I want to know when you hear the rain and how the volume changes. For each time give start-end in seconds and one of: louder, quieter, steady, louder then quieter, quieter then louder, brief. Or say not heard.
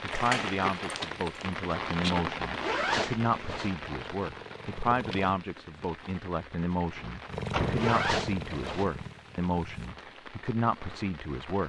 0.0-11.6 quieter.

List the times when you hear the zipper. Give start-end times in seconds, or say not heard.
2.5-3.7, 7.8-8.8.